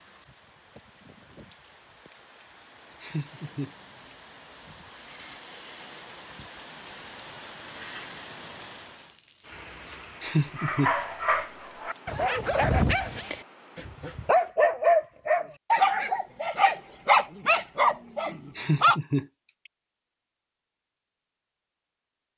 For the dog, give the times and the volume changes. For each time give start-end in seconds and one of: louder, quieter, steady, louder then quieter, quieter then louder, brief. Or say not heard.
10.6-19.0 louder.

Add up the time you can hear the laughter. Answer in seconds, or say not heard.
2 s.